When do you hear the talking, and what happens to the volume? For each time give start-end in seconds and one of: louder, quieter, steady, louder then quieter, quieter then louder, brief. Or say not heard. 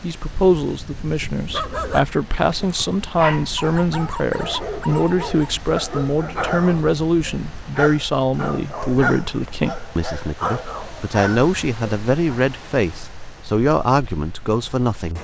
0.0-15.1 steady.